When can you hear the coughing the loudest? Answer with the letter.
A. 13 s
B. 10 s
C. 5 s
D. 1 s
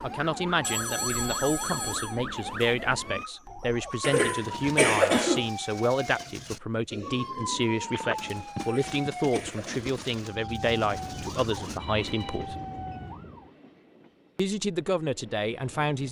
C.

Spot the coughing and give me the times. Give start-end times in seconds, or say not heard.
4.0-5.5, 8.6-10.1.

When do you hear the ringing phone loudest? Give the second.
1 s.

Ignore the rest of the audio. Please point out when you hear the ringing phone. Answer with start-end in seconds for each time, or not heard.
0.6-2.2, 7.9-9.1, 11.8-12.4.